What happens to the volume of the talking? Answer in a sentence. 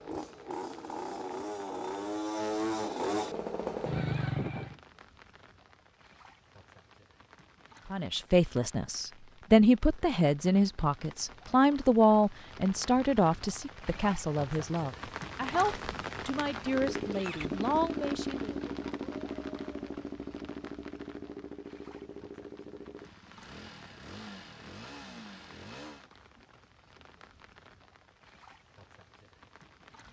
The volume of the talking goes down.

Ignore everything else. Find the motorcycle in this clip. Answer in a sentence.
The motorcycle can be heard from 0.0 to 4.8 s and from 16.6 to 26.1 s.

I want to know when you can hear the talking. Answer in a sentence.
The talking can be heard from 7.9 to 18.6 s.